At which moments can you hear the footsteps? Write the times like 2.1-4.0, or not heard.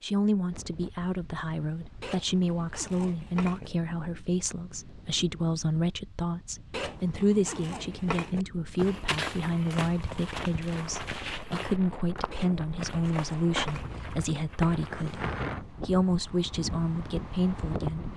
8.8-15.3.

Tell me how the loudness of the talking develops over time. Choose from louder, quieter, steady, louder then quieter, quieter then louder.
steady.